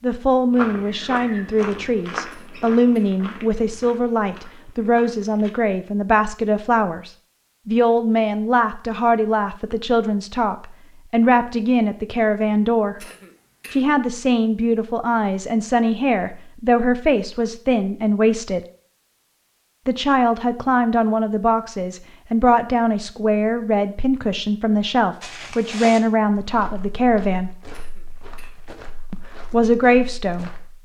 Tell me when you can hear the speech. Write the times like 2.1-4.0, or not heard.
0.0-13.1, 13.7-18.6, 19.9-27.5, 29.1-30.8.